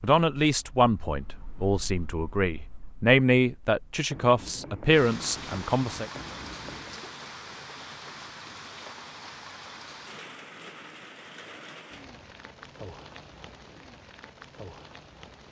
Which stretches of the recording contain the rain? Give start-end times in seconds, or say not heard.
4.9-15.4.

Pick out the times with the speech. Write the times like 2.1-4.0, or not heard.
0.0-6.1.